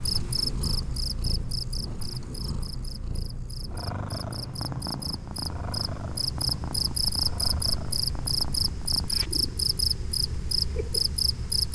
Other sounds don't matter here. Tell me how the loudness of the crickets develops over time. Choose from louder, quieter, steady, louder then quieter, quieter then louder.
quieter then louder.